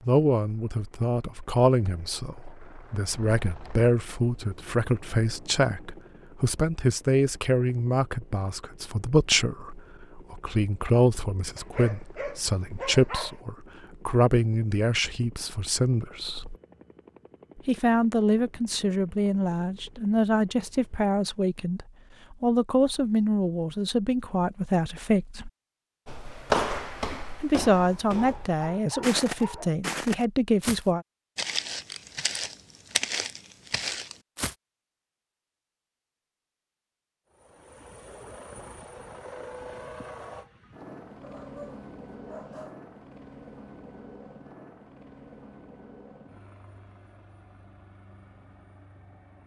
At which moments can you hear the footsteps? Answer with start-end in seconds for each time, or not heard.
26.1-34.5.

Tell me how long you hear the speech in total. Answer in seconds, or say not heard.
28 s.